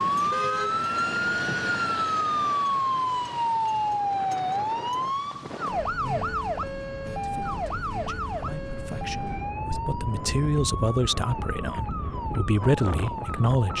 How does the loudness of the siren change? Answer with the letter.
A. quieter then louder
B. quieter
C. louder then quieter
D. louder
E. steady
B.